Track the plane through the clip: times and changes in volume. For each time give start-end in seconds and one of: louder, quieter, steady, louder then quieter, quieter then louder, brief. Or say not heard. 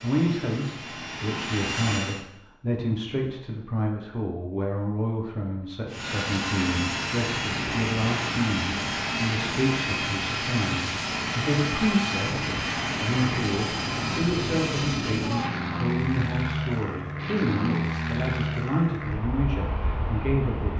0.0-2.2 brief
5.8-20.7 steady.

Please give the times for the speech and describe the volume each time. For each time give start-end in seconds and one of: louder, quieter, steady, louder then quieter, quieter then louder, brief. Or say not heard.
0.0-20.7 steady.